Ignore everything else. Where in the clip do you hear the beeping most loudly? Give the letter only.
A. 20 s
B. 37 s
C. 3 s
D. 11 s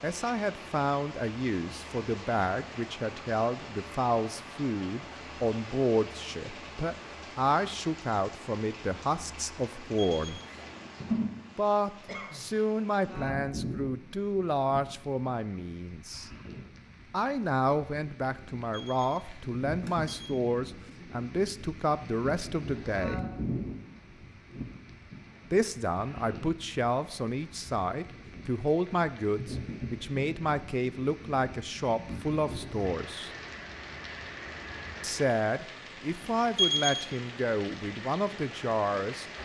B.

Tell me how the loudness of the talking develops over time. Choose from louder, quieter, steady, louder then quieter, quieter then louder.
steady.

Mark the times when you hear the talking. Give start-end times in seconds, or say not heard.
0.0-10.4, 11.6-16.3, 17.1-23.3, 25.5-33.3, 35.0-39.2.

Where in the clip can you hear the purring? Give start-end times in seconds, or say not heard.
not heard.